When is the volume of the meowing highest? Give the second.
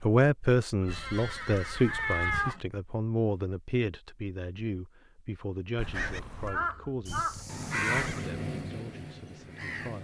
2 s.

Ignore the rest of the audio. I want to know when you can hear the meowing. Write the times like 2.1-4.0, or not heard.
0.8-2.5, 5.8-6.6.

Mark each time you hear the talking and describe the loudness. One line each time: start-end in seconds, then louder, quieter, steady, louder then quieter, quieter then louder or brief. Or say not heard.
0.0-10.0 quieter.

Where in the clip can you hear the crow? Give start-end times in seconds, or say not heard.
5.9-10.0.